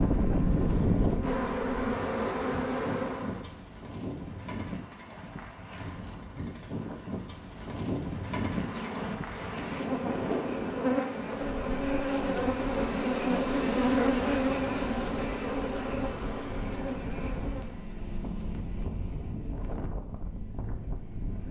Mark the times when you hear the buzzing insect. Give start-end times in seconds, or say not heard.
0.0-3.5, 8.4-17.8.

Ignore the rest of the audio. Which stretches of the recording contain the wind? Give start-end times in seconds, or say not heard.
0.0-21.4.